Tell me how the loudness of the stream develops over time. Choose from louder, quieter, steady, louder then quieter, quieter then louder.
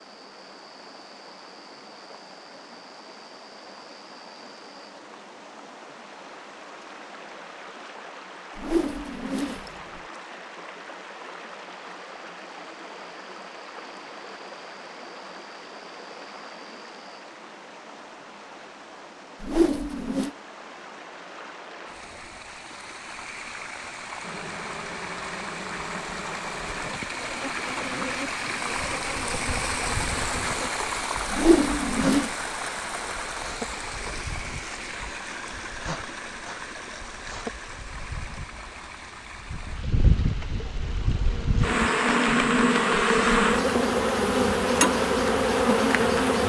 louder then quieter.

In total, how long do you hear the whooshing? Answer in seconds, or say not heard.
3 s.